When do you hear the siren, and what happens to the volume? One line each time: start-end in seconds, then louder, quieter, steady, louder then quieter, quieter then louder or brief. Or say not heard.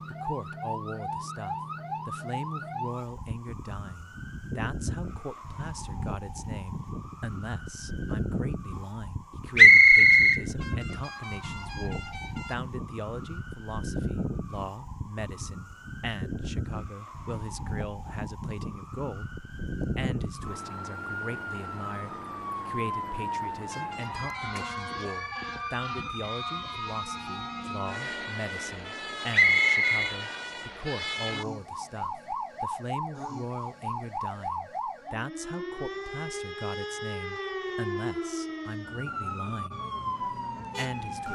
0.0-41.2 steady.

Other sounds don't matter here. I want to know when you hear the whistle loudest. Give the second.
10 s.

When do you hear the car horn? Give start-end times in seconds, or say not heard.
10.6-12.6, 23.6-24.9.